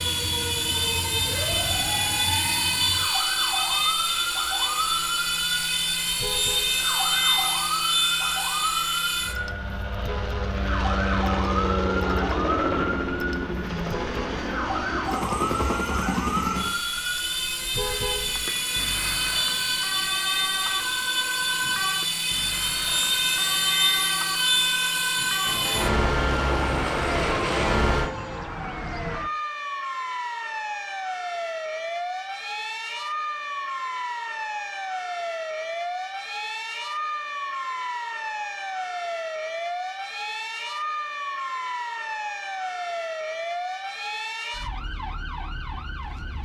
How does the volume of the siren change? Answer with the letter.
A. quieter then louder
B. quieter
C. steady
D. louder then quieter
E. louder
C.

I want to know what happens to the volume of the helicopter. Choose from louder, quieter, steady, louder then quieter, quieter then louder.
steady.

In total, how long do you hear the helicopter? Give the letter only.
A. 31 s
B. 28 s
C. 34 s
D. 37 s
B.